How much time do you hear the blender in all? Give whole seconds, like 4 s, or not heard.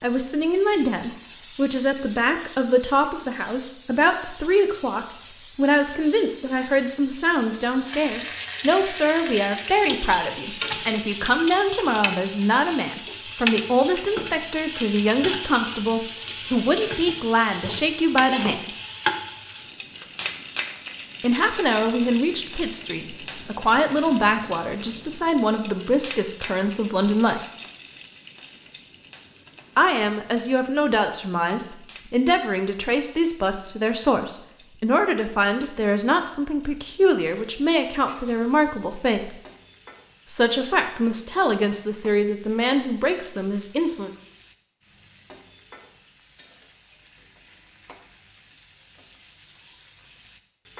not heard.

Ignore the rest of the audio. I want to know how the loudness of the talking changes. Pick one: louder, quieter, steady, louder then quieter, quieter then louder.
steady.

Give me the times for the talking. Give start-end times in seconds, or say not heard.
0.0-18.7, 21.2-27.4, 29.8-39.4, 40.2-44.1.